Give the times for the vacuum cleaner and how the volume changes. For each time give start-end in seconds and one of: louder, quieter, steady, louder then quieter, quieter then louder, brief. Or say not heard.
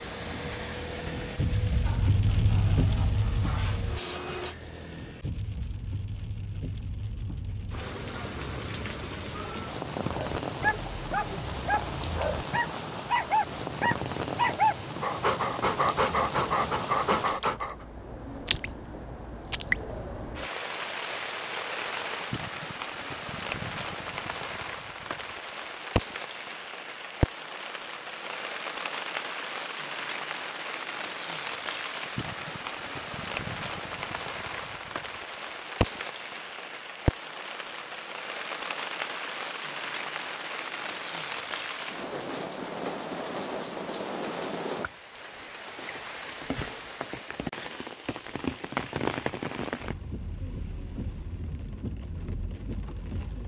0.0-4.5 quieter then louder.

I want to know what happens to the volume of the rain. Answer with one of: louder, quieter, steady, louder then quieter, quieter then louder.
steady.